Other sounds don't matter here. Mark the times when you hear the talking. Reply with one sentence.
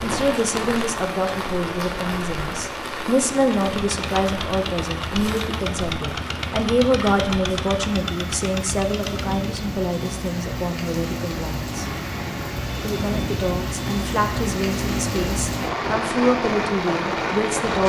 You can hear the talking from 0.0 to 11.8 s and from 12.8 to 17.8 s.